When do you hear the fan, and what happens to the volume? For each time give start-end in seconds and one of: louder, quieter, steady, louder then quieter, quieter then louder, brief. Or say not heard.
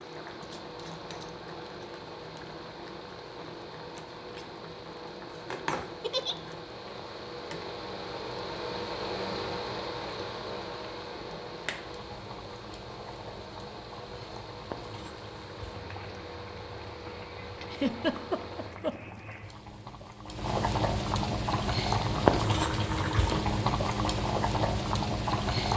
0.0-18.8 louder then quieter.